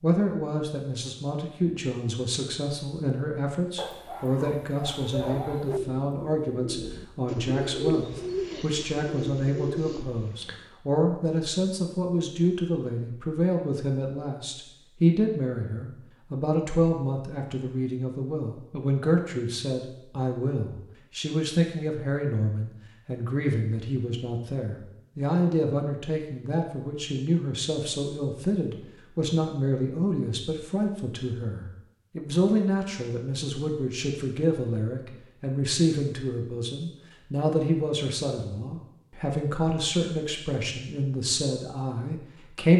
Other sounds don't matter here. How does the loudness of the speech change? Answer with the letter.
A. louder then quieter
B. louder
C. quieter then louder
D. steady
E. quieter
D.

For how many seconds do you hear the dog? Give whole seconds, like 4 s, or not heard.
2 s.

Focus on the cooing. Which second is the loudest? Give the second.
8 s.